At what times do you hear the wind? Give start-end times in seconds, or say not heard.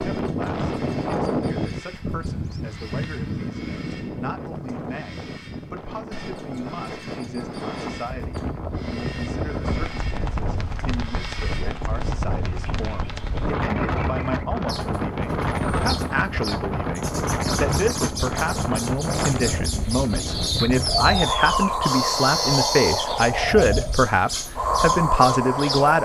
0.0-25.9.